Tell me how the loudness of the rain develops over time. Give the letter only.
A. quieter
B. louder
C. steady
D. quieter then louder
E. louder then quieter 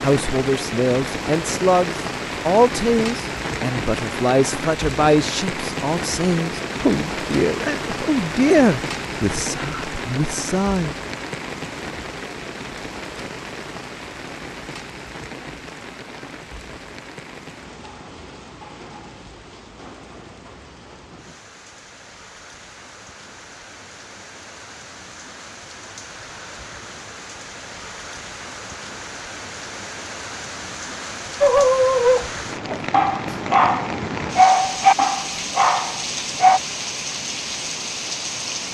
D.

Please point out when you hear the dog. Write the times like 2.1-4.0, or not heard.
31.4-36.6.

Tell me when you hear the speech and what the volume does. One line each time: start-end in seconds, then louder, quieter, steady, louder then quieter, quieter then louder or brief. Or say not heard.
0.0-10.9 steady.